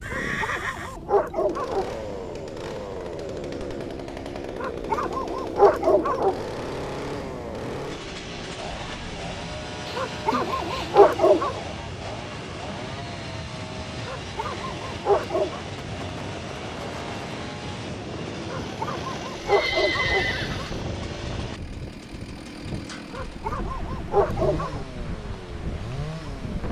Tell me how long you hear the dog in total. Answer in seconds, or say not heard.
11 s.